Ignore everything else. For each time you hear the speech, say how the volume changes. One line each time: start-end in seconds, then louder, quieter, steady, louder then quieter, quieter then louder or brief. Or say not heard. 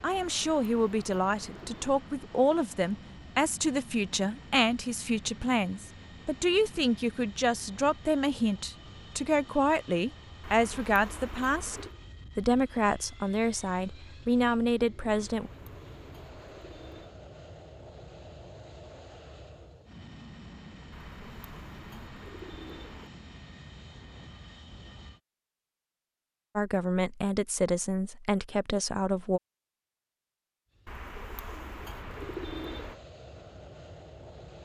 0.0-15.5 steady
26.6-29.4 brief.